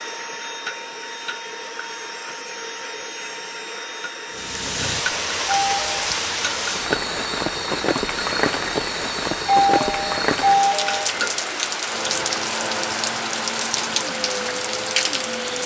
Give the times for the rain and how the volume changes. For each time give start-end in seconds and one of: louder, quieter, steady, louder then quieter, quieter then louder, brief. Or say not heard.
4.3-15.6 steady.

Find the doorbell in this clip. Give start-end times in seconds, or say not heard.
5.5-6.0, 9.4-11.1.